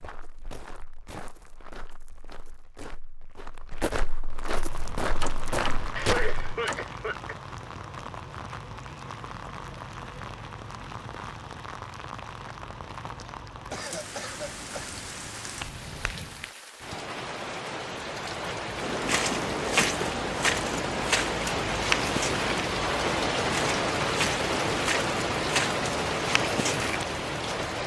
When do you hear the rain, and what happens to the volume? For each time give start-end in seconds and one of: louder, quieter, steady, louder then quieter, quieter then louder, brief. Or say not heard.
4.5-27.8 louder.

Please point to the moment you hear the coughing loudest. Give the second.
6 s.